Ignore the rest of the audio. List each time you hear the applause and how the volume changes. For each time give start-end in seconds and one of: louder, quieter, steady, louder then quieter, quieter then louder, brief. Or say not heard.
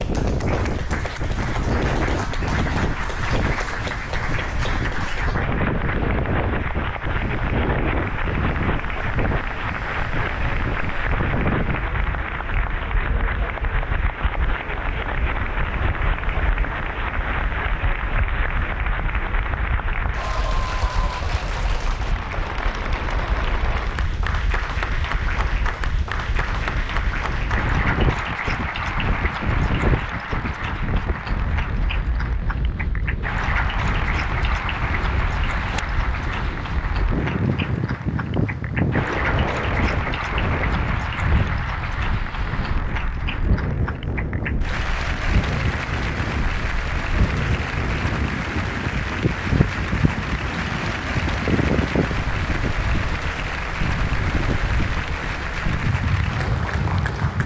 0.0-57.4 steady.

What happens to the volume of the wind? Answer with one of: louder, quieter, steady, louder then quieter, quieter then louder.
quieter then louder.